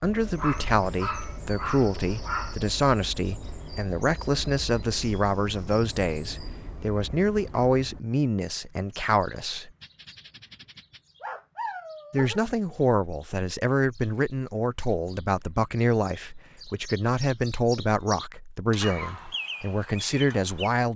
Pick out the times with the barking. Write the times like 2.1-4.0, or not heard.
0.3-2.5, 9.8-12.4, 18.8-19.4.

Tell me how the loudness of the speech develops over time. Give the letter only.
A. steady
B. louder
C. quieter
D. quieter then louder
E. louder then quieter
A.